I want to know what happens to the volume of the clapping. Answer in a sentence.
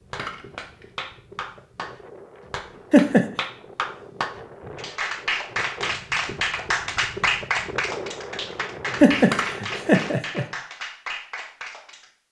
The volume of the clapping goes up, then down.